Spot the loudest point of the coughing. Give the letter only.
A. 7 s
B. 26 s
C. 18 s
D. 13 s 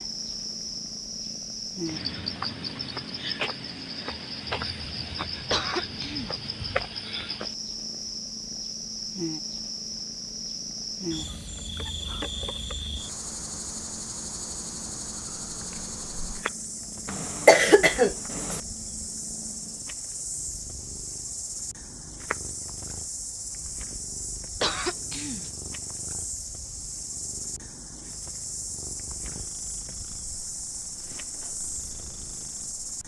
C.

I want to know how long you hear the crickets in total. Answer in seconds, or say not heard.
33 s.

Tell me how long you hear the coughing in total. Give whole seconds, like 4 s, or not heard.
4 s.